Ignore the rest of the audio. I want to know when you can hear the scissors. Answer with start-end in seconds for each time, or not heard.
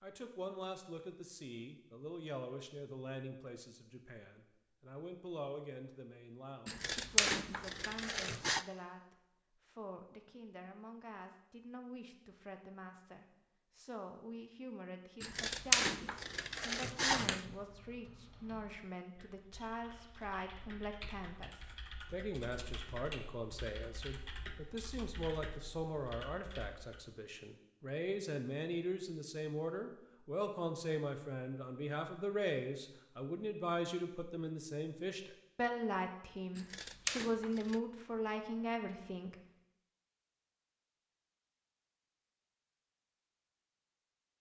6.7-8.7, 15.2-17.4, 36.5-37.8.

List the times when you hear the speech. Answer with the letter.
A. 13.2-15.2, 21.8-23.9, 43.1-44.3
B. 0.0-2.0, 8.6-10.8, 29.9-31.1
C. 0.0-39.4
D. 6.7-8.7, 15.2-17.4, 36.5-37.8
C.